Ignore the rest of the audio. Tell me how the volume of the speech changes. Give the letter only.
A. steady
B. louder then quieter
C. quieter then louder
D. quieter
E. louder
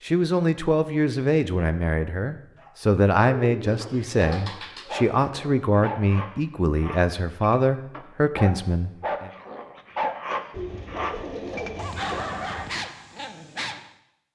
A.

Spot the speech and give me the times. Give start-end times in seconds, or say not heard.
0.0-9.3.